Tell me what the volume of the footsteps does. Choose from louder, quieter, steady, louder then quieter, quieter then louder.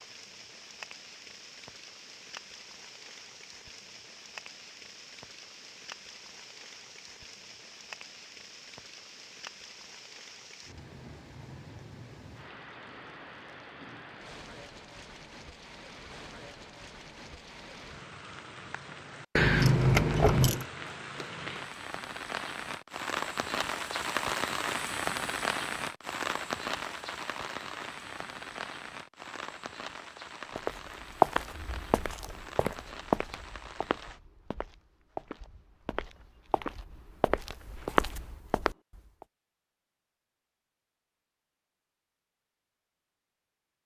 quieter then louder.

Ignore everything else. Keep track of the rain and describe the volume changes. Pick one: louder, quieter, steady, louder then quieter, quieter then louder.
louder then quieter.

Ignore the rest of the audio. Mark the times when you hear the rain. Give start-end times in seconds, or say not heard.
0.0-34.2.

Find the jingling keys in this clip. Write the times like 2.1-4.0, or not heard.
19.4-20.6.